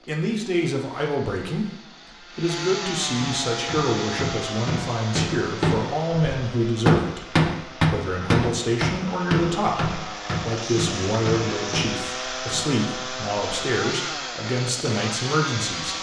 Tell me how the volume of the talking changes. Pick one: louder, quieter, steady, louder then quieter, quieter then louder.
steady.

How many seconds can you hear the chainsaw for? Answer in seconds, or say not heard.
16 s.